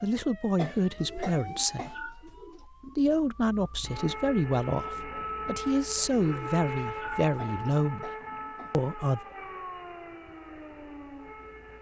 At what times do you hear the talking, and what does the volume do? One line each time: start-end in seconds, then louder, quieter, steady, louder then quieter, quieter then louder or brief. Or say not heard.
0.0-8.1 steady
8.7-9.2 brief.